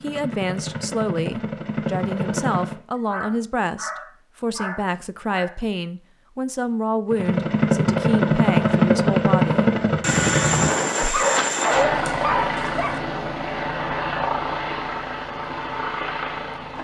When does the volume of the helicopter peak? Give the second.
9 s.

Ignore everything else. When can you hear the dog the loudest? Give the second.
12 s.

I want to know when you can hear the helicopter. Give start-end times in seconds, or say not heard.
0.0-2.8, 7.1-16.8.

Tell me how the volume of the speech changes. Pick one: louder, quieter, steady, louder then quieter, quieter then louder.
steady.